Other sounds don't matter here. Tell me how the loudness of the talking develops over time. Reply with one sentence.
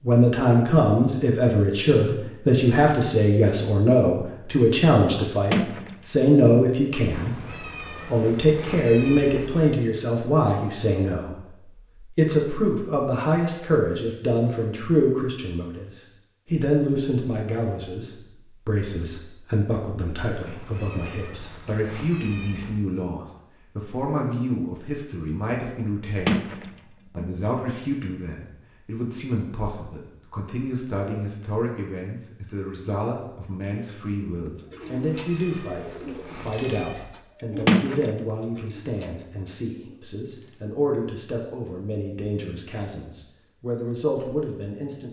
The volume of the talking goes down.